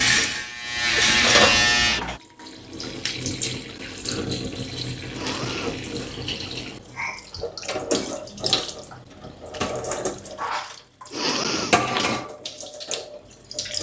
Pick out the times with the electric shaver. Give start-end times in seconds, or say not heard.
0.0-2.2.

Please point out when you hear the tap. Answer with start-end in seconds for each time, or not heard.
0.0-13.7.